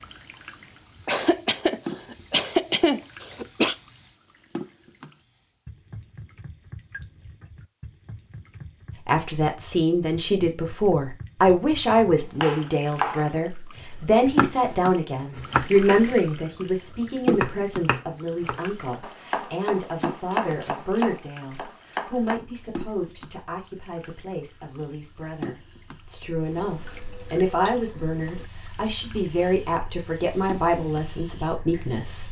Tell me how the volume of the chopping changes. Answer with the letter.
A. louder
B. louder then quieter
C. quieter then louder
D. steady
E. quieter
D.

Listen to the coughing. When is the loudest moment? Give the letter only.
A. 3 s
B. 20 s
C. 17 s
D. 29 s
A.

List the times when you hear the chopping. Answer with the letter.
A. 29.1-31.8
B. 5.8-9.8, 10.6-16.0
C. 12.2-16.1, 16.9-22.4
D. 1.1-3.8
C.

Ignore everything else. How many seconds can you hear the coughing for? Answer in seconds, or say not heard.
3 s.